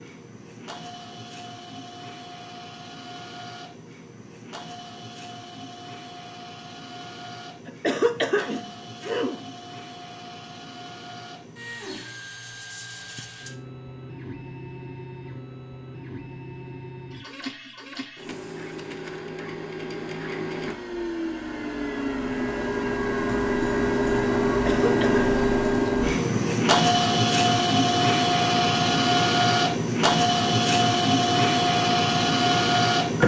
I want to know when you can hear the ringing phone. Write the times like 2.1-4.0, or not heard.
not heard.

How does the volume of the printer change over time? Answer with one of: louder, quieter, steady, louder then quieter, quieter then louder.
louder.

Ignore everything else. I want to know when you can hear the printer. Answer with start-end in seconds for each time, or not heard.
0.0-33.2.